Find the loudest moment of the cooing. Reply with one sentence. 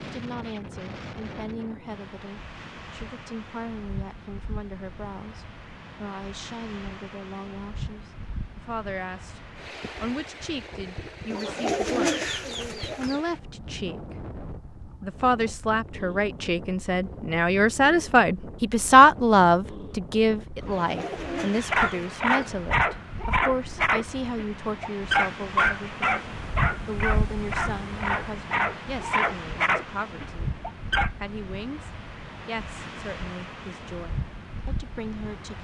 The volume of the cooing peaks at 12 seconds.